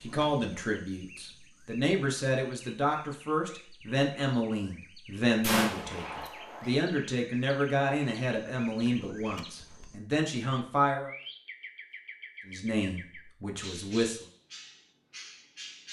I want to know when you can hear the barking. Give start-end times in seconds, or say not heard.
not heard.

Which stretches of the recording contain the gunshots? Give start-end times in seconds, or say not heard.
5.4-6.8.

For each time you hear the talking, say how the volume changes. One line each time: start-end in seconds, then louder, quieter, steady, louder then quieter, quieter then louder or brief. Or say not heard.
0.0-11.1 steady
12.4-14.2 brief.